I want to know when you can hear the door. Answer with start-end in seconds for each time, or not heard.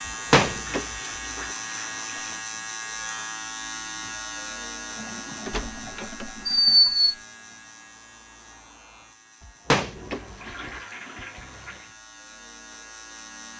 0.1-1.4, 5.5-7.2, 9.4-10.8.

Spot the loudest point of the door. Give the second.
7 s.